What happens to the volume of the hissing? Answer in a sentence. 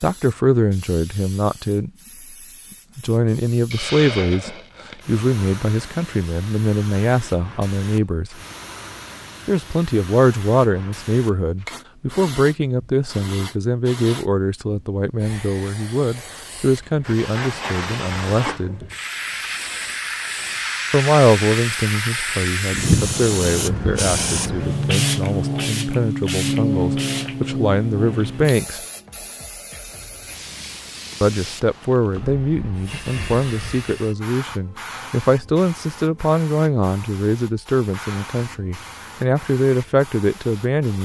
The loudness of the hissing goes up, then down.